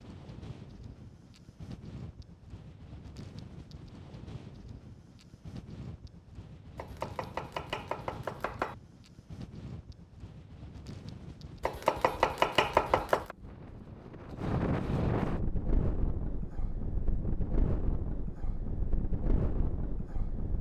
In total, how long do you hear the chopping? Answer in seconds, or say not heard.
4 s.